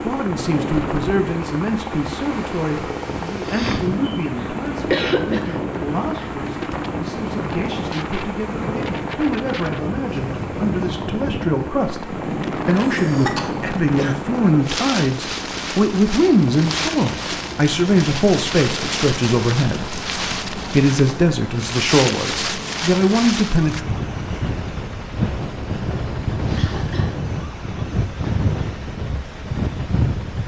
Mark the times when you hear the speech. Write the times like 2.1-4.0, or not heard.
0.0-23.8.